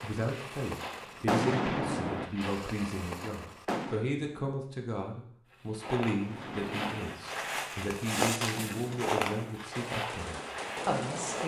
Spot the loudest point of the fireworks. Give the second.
1 s.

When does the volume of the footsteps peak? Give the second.
8 s.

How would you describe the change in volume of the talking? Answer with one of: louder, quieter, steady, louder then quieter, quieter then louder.
steady.